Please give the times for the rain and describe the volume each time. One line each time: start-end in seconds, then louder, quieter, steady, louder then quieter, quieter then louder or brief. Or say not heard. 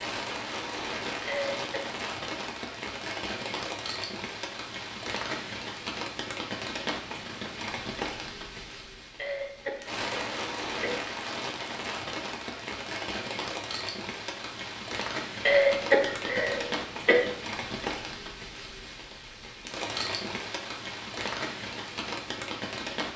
0.0-23.1 steady.